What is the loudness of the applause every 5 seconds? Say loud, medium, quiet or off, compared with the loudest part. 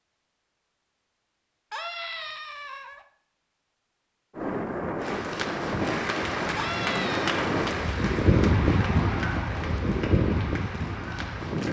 off, loud, medium.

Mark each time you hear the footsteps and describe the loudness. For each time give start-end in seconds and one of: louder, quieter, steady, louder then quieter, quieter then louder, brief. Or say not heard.
not heard.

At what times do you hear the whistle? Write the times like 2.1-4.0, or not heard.
not heard.